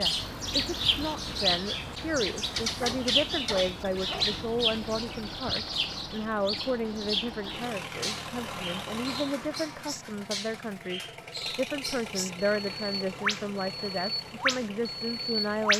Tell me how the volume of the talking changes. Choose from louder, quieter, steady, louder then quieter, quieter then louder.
steady.